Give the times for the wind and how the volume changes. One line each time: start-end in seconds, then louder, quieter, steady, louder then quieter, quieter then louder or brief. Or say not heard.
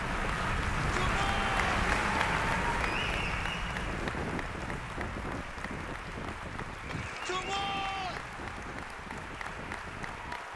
0.0-10.5 quieter.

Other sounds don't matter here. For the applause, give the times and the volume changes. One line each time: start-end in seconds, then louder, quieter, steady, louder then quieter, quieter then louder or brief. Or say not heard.
0.0-10.5 quieter.